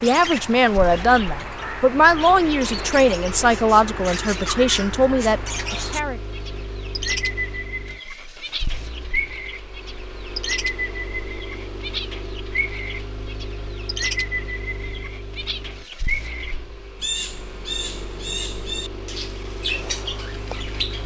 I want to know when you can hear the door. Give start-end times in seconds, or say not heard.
not heard.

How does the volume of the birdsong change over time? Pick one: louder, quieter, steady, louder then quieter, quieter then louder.
steady.